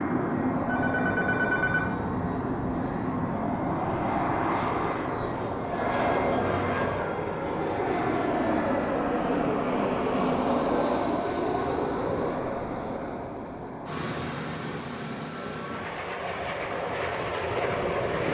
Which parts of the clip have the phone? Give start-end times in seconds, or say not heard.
0.7-1.9.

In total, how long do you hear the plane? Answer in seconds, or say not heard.
18 s.